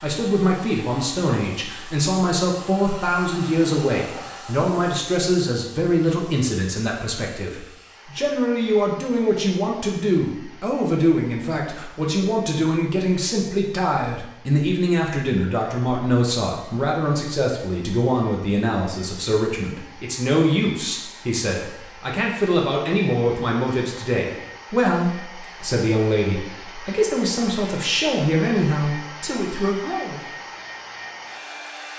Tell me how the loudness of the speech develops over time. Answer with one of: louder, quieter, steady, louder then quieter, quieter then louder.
steady.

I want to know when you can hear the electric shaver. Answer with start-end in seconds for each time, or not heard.
not heard.